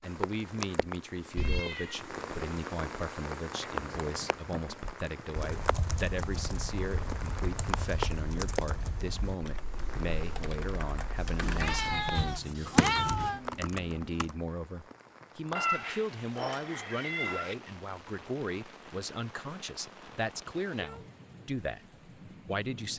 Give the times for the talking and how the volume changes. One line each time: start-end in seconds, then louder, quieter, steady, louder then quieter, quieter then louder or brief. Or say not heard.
0.0-22.9 steady.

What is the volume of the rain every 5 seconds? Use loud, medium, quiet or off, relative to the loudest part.
loud, loud, medium, medium, medium.